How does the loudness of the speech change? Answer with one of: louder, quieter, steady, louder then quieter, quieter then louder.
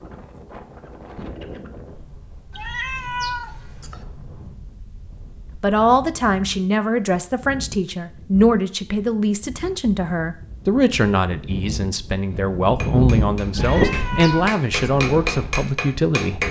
steady.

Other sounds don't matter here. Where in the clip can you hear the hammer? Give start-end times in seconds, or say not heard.
12.8-16.4.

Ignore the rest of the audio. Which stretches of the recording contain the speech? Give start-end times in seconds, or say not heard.
5.6-16.4.